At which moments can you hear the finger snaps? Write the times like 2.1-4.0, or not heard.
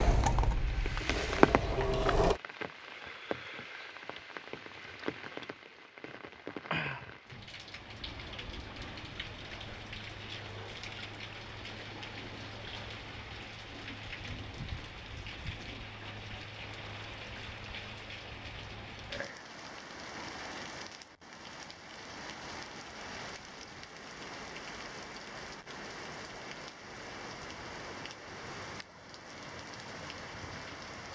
not heard.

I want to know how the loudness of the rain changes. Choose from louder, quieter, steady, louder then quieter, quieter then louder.
quieter.